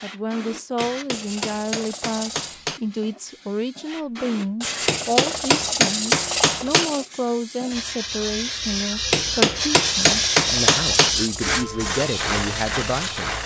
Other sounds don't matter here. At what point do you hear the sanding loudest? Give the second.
6 s.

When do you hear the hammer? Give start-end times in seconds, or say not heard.
0.8-2.8, 4.8-6.8, 9.1-11.1.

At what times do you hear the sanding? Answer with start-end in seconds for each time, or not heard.
1.1-2.6, 4.6-7.1, 9.8-11.6.